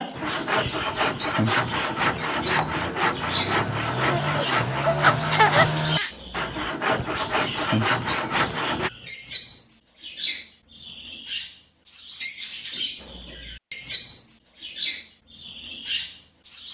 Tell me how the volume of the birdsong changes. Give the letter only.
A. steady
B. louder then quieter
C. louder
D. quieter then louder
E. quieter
A.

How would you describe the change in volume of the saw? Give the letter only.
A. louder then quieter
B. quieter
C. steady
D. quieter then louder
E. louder
C.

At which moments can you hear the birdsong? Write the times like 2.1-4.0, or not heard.
0.0-16.6.